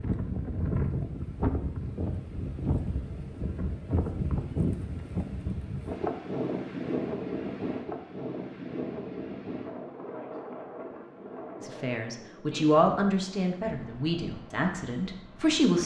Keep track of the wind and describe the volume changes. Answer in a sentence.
The loudness of the wind goes down.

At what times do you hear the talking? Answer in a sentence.
The talking can be heard from 11.6 to 15.8 s.